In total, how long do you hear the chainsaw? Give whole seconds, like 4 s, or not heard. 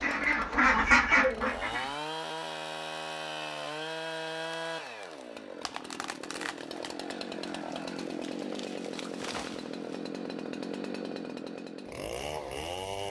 13 s.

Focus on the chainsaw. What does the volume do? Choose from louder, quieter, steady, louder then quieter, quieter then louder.
steady.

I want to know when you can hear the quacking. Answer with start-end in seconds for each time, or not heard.
0.0-2.0.